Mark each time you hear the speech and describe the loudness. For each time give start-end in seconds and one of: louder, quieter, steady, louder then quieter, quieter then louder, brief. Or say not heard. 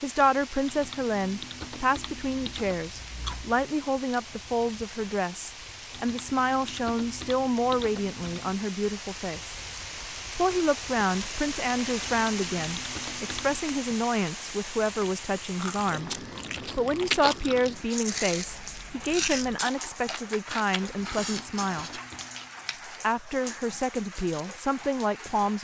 0.0-9.6 steady
10.3-22.0 steady
23.0-25.5 brief.